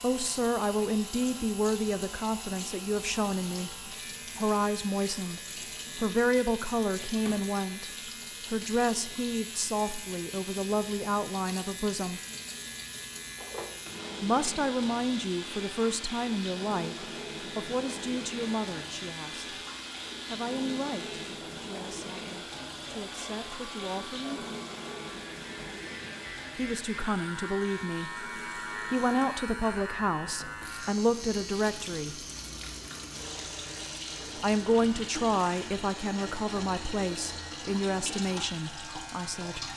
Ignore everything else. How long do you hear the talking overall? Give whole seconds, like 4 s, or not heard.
33 s.